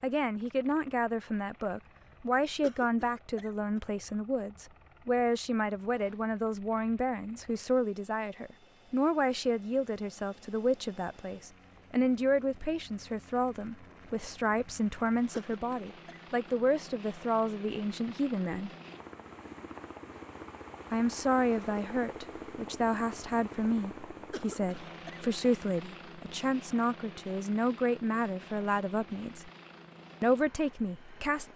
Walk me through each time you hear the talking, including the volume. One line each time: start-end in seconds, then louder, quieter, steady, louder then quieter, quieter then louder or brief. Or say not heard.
0.0-18.7 steady
20.9-29.5 steady
30.2-31.5 brief.